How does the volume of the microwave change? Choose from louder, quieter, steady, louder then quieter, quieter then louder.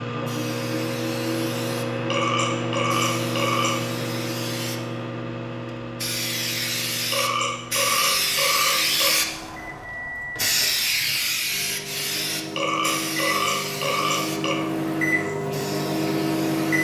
quieter then louder.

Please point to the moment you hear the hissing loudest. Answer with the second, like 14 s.
9 s.